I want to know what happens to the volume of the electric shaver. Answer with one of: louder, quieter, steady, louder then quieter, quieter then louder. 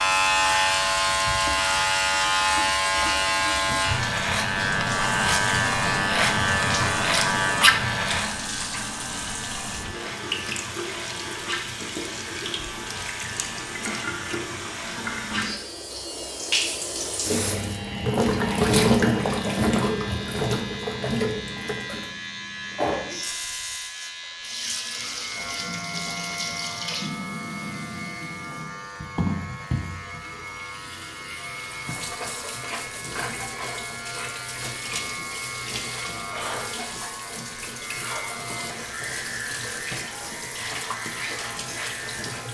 quieter.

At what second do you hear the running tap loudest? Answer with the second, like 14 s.
19 s.